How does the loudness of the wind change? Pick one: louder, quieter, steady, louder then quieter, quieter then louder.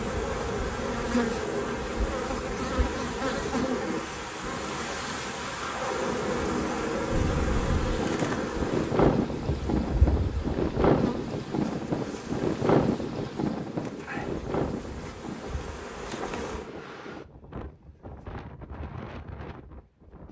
quieter.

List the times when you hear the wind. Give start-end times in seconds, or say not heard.
7.1-20.2.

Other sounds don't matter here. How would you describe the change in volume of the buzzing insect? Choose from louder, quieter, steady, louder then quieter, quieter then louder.
quieter.